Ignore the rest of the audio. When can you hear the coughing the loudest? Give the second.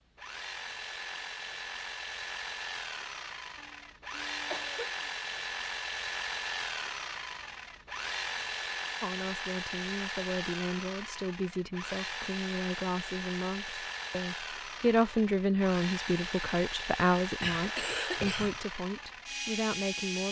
18 s.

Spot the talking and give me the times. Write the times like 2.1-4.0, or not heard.
9.0-20.2.